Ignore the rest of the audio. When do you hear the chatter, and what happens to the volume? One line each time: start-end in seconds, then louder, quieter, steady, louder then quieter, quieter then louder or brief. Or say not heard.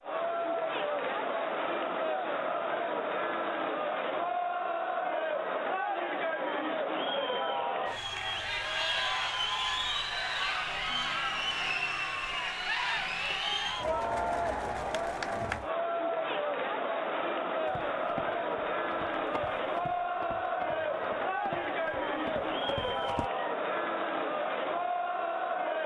0.0-25.8 steady.